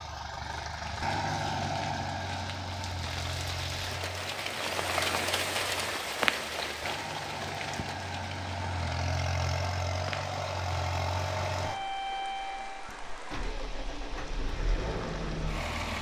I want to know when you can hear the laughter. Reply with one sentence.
You can't hear the laughter here.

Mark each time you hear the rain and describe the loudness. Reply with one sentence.
You can hear the rain from 0.0 to 15.7 s, getting louder then quieter.